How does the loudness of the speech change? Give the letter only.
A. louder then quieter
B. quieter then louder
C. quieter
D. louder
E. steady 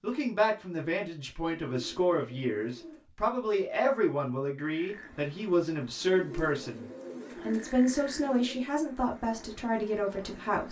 E.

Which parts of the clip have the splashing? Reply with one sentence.
You can't hear the splashing here.